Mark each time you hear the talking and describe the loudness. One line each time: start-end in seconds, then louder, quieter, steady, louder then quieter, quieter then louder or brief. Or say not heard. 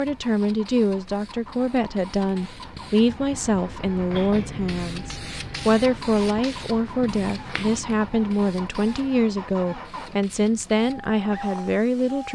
0.0-12.3 steady.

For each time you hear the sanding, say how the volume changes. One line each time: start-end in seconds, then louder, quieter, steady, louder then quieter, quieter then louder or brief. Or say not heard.
not heard.